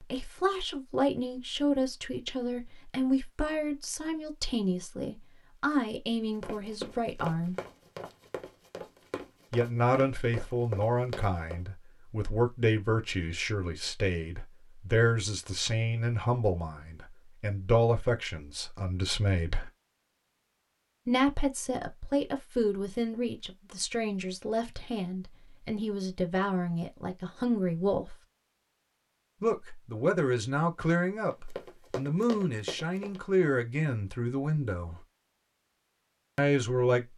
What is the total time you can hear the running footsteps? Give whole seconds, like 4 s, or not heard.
7 s.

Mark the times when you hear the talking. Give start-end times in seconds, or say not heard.
0.0-7.5, 9.5-19.7, 21.1-28.1, 29.4-35.0, 36.4-37.1.